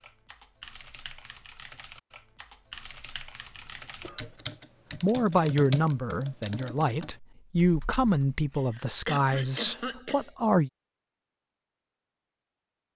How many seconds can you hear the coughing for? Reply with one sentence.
The coughing can be heard for 3 seconds in total.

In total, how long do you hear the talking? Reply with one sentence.
The talking can be heard for 6 seconds in total.